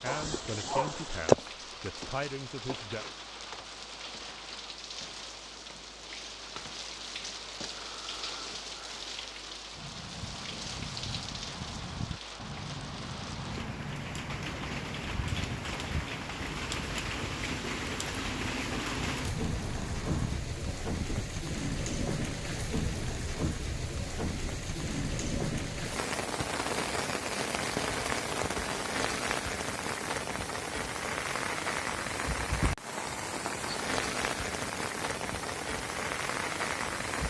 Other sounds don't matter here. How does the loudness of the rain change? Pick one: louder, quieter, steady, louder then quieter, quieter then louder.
louder.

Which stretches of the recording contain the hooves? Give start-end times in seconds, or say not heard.
9.7-21.3.